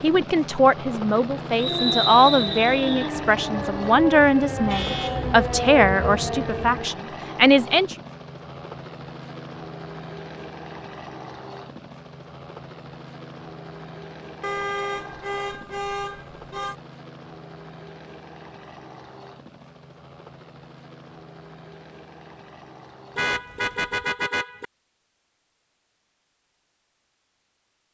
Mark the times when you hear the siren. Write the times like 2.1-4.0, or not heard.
1.6-6.9.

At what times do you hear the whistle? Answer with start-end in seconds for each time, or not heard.
1.6-3.1.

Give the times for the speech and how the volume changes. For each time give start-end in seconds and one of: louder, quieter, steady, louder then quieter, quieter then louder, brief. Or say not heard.
0.0-8.0 steady.